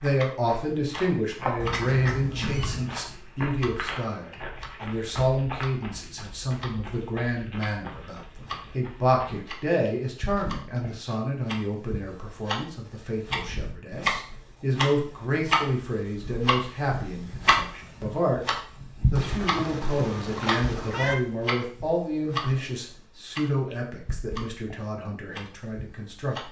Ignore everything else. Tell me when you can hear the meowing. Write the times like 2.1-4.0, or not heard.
1.6-3.0, 19.1-21.1.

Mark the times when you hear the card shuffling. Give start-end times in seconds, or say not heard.
not heard.